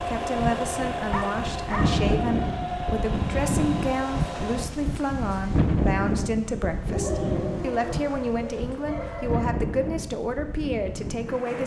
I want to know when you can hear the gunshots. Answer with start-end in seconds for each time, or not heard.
not heard.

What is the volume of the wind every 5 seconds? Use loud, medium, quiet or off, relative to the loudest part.
loud, loud, medium.